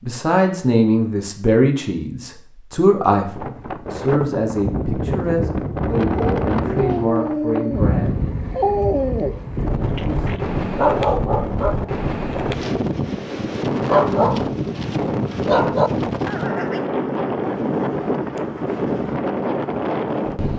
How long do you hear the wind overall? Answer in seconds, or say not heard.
17 s.